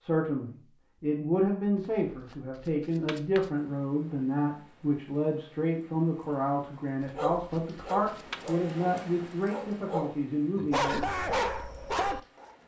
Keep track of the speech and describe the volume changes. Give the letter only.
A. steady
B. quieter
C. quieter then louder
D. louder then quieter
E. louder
A.